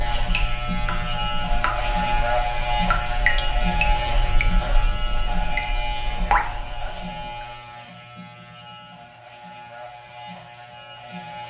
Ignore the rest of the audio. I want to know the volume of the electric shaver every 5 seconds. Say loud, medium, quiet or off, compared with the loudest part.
loud, medium, quiet.